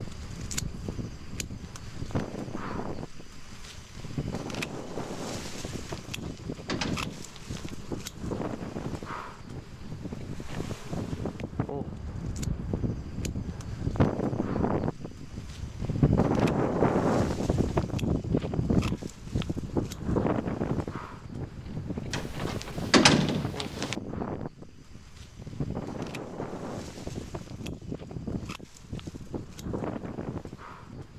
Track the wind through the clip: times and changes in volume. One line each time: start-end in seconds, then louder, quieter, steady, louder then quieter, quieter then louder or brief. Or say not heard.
0.0-31.1 louder then quieter.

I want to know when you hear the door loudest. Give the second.
23 s.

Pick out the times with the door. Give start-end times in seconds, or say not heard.
6.0-7.6, 22.1-23.9.